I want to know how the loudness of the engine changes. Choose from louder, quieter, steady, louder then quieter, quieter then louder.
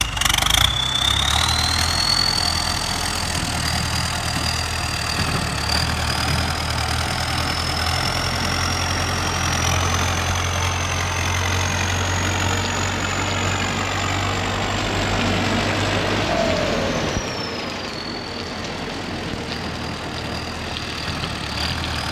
quieter.